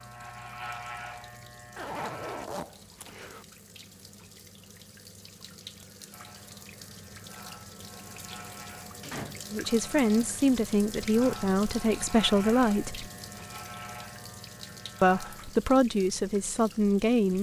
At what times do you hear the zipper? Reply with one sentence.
You can hear the zipper from 1.8 to 3.5 s.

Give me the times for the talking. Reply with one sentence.
The talking can be heard from 9.5 to 13.1 s and from 15.0 to 17.3 s.